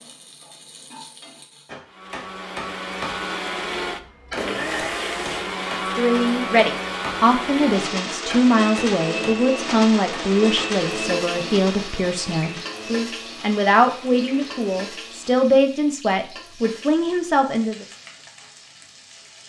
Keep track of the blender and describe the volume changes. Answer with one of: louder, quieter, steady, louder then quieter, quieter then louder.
quieter.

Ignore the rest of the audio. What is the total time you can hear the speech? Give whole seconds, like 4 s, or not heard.
12 s.